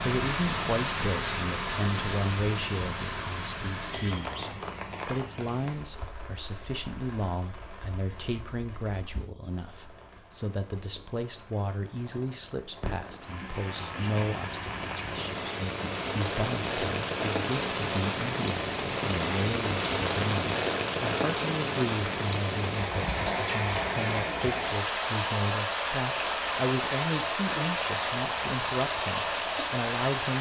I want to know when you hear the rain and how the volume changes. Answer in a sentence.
The rain can be heard from 0.0 to 30.3 s, getting quieter then louder.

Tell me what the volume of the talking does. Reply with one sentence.
The volume of the talking stays about the same.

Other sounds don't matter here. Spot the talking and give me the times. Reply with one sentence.
The talking can be heard from 0.0 to 30.3 s.